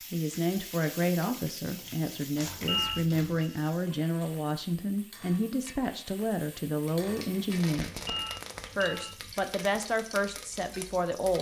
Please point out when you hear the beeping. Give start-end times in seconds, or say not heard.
2.6-3.5, 8.0-9.3.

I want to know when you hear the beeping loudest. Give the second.
3 s.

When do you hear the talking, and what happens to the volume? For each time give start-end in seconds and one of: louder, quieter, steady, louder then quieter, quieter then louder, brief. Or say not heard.
0.1-8.0 steady
8.8-11.3 brief.